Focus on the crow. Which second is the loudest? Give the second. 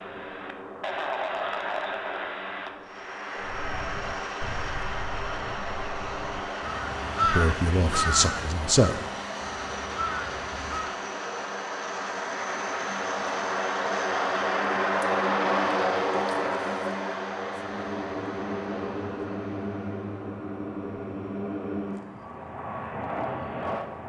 7 s.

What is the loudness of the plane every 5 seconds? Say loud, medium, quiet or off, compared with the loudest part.
medium, medium, loud, loud, medium.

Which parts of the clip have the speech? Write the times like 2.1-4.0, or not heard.
7.2-9.0.